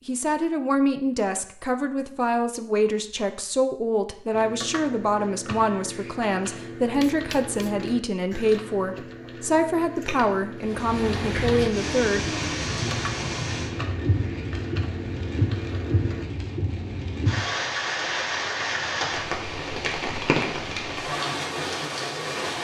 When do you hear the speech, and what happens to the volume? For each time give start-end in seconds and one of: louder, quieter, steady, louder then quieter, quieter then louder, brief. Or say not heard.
0.1-12.2 steady.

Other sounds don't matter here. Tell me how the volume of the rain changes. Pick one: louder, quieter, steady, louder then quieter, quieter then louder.
steady.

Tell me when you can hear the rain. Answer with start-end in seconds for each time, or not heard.
10.6-22.5.